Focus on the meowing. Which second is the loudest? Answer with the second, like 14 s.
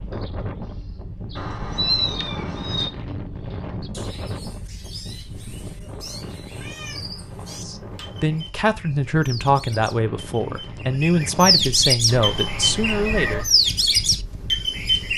2 s.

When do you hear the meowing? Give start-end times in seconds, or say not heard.
1.4-2.9, 6.5-8.5, 12.1-13.4.